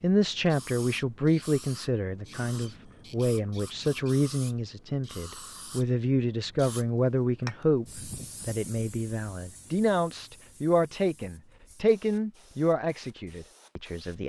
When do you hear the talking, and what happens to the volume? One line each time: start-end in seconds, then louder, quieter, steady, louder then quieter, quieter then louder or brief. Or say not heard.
0.0-14.2 steady.